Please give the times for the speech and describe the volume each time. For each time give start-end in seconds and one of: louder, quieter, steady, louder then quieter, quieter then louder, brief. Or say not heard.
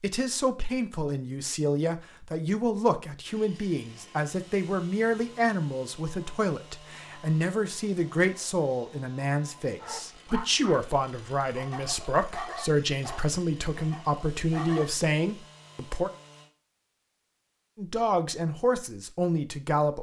0.0-16.1 steady
17.8-19.9 brief.